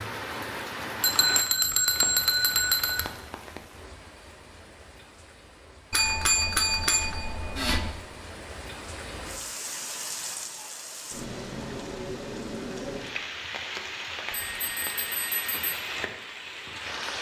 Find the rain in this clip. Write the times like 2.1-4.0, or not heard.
0.0-17.1.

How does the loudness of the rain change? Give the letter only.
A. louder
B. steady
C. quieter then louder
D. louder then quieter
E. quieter
C.